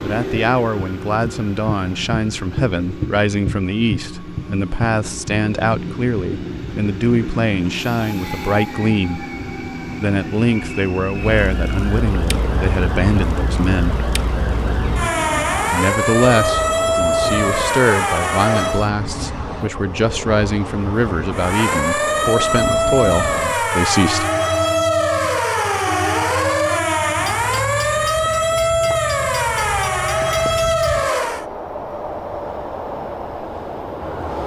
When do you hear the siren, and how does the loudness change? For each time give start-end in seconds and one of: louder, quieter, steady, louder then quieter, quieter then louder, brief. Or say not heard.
11.1-18.9 louder
21.3-31.4 steady.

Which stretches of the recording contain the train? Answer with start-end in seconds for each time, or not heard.
0.0-34.4.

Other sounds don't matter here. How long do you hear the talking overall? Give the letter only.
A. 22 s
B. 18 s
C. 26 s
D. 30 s
A.